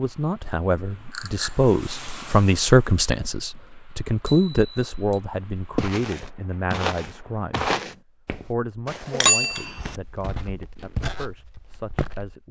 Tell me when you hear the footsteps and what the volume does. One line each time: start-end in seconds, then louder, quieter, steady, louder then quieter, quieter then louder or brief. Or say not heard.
5.8-12.3 quieter then louder.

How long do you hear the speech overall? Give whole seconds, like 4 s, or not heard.
12 s.